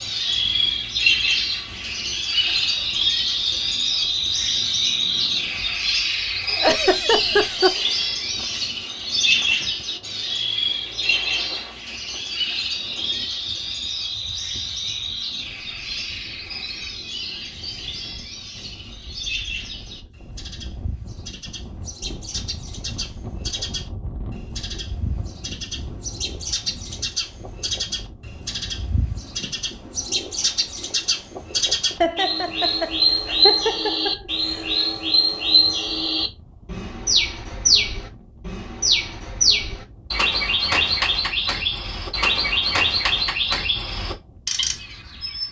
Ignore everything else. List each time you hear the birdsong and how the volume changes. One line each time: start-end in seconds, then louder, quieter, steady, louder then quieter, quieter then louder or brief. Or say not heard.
0.0-45.4 quieter then louder.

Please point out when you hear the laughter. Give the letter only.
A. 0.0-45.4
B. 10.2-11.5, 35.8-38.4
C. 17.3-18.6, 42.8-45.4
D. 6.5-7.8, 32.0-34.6
D.